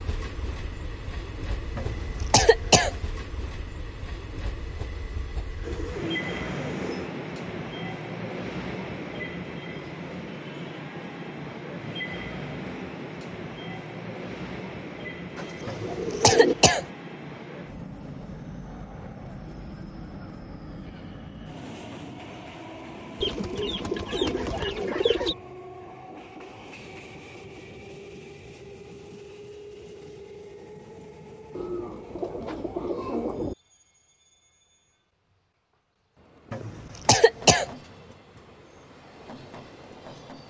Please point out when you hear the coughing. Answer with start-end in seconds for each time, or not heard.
1.8-3.0, 15.7-16.9, 36.5-37.7.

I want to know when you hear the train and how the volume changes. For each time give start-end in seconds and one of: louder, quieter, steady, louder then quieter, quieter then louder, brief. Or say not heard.
0.0-40.4 quieter.